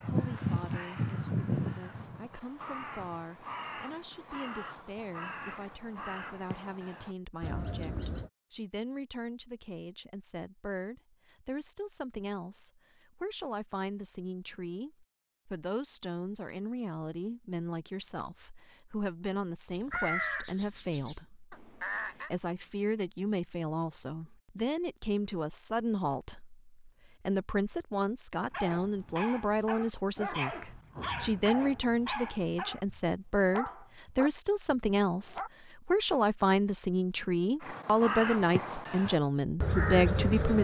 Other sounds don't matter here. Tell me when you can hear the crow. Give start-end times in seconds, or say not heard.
0.0-8.3, 19.7-22.3, 37.6-40.5.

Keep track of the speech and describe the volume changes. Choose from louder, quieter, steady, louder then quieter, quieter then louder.
louder.